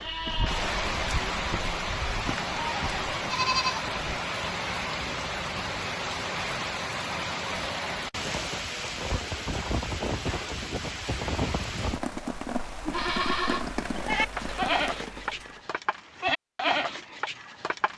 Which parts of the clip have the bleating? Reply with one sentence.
The bleating can be heard from 0.0 to 4.2 s and from 12.8 to 17.9 s.